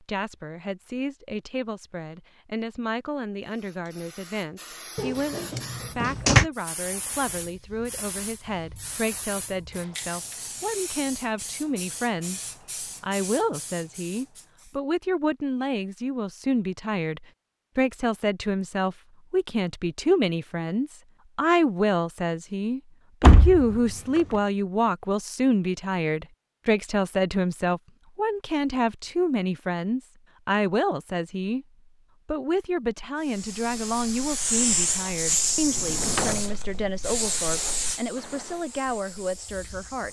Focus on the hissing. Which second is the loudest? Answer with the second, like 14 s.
35 s.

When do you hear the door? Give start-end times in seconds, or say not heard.
5.0-6.5, 23.2-24.2, 35.6-36.8.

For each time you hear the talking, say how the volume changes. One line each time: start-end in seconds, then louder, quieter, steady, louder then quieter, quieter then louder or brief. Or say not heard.
0.0-31.6 louder
32.2-40.0 steady.